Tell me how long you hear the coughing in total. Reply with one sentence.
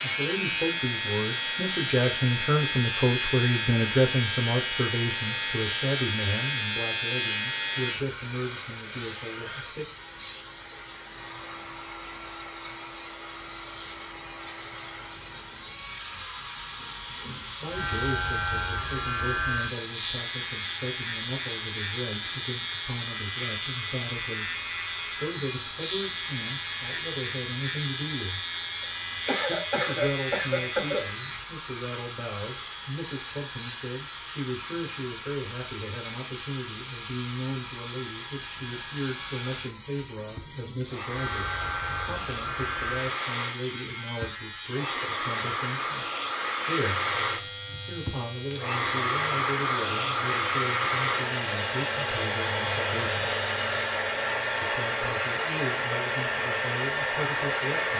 You can hear the coughing for 2 seconds altogether.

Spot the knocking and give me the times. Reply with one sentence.
The knocking can't be heard in this clip.